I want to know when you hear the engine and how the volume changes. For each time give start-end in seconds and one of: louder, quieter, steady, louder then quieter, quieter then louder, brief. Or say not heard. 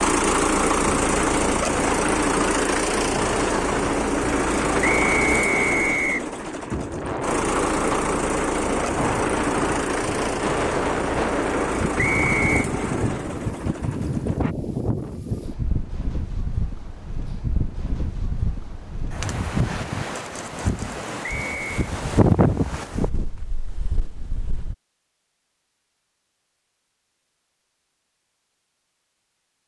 0.0-14.6 quieter.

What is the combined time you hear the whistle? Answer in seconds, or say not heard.
3 s.